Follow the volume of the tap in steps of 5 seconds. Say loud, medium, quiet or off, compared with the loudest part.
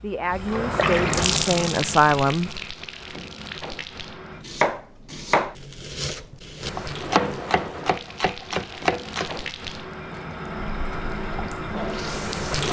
loud, medium, loud.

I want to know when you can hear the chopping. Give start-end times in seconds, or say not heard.
4.4-9.4.